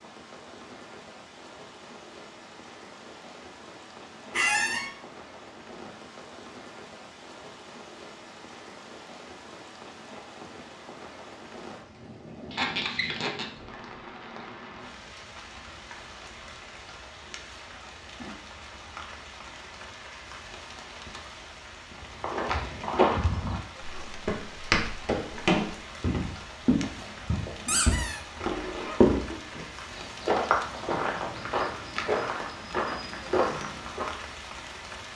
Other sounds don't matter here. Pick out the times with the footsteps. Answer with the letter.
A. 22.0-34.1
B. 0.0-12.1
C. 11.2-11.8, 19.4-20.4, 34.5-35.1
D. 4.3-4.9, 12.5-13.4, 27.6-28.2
A.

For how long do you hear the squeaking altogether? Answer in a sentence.
You can hear the squeaking for 2 seconds altogether.